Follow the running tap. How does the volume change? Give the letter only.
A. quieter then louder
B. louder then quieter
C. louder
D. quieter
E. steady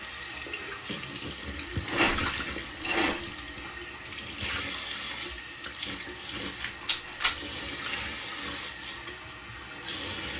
E.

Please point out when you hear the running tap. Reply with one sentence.
You can hear the running tap from 0.0 to 10.3 s.